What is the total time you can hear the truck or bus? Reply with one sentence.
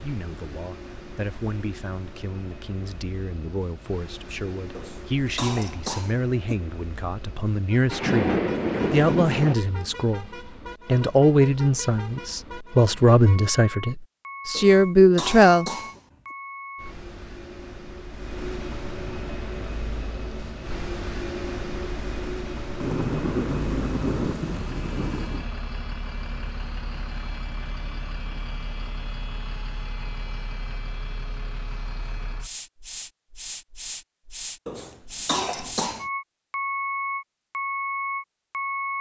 The truck or bus can be heard for 39 seconds in total.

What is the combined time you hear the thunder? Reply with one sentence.
The thunder can be heard for 4 seconds in total.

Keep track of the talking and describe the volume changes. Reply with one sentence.
The volume of the talking goes up.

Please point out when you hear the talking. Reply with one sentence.
You can hear the talking from 0.0 to 15.7 s.